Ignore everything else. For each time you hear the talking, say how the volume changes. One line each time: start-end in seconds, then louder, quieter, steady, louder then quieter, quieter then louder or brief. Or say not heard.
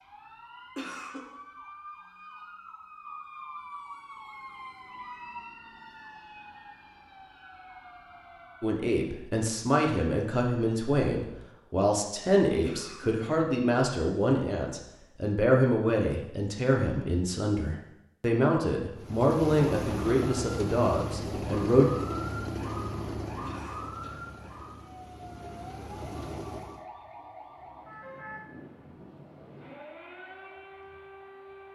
8.6-21.9 steady.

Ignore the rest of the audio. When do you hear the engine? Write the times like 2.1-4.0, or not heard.
18.9-26.9.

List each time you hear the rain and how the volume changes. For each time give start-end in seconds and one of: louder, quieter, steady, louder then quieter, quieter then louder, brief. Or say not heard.
not heard.